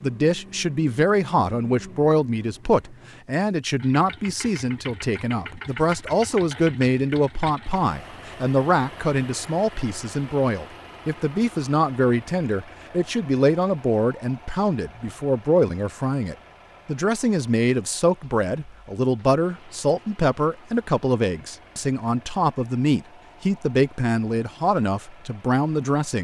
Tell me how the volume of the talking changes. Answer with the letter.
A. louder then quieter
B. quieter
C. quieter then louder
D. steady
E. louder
D.